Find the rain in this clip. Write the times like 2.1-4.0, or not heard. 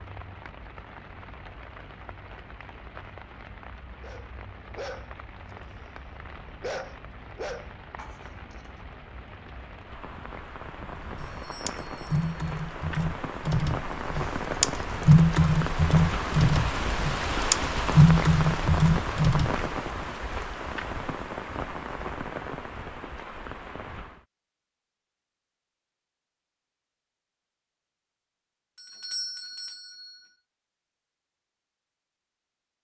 0.0-24.2.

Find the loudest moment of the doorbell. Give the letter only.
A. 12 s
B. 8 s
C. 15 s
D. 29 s
D.